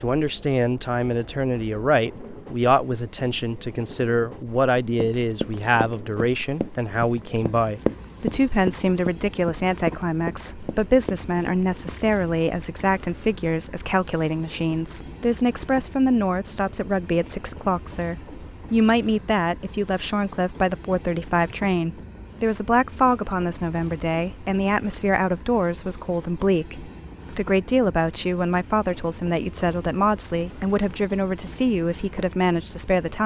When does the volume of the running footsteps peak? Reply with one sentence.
The loudest moment of the running footsteps is at 8 seconds.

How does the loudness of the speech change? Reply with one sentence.
The loudness of the speech stays about the same.